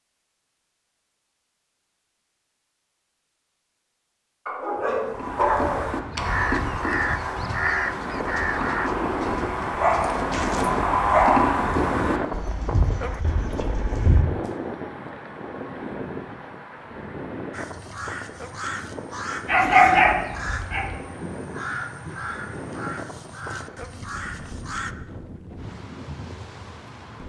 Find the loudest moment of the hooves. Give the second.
11 s.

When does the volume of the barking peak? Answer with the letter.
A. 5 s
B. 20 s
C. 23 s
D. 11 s
B.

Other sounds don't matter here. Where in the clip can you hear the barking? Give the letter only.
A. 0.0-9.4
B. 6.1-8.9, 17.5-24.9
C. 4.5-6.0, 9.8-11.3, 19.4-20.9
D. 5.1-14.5
C.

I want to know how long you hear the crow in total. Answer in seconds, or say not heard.
10 s.